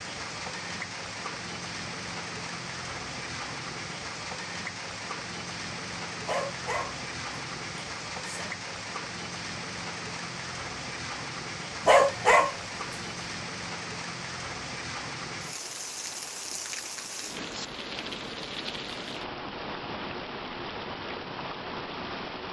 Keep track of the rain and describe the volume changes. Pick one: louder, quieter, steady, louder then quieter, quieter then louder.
steady.